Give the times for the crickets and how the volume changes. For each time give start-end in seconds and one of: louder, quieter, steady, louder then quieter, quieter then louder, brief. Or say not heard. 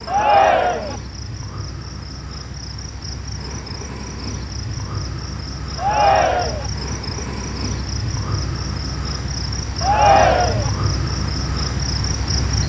0.0-12.6 louder.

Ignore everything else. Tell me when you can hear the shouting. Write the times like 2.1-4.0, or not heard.
0.1-0.9, 5.8-6.7, 9.8-10.7.